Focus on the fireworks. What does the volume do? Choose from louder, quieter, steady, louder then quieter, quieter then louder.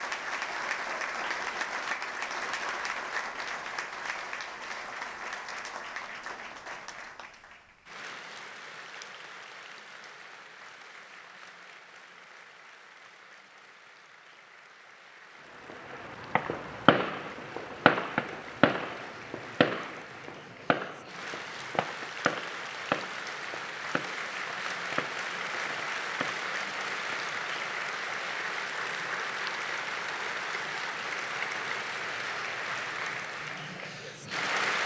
quieter.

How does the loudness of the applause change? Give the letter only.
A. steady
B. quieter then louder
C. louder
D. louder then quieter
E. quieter
B.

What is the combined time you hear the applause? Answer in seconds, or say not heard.
35 s.